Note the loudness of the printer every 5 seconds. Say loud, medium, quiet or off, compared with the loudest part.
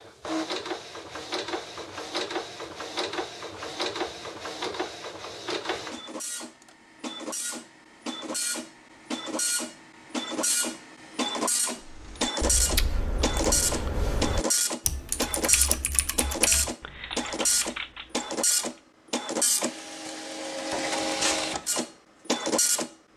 medium, medium, loud, loud, loud.